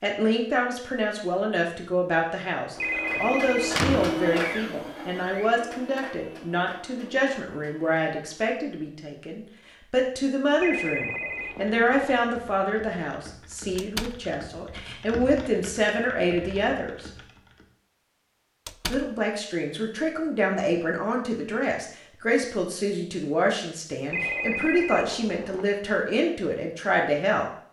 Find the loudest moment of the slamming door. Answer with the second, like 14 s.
4 s.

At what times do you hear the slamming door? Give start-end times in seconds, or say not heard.
3.1-4.2, 13.8-14.2, 18.6-19.1.